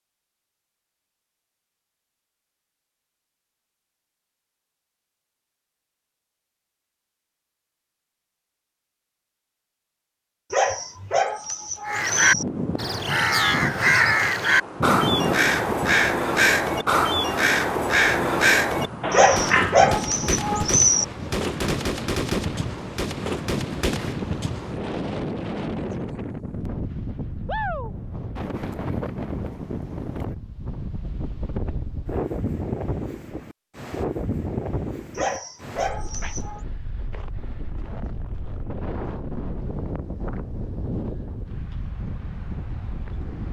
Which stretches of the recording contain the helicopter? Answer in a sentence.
You can't hear the helicopter here.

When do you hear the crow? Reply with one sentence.
The crow can be heard from 11.8 to 19.8 s.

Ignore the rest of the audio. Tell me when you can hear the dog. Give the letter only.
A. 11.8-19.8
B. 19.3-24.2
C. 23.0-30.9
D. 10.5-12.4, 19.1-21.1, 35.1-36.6
D.